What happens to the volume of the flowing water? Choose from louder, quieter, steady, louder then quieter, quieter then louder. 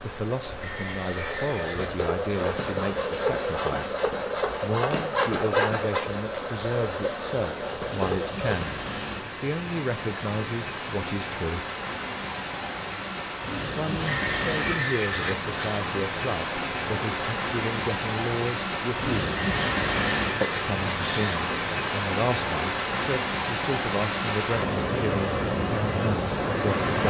louder.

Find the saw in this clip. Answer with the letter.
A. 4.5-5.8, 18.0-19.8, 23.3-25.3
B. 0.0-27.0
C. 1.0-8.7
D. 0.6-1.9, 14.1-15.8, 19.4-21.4
C.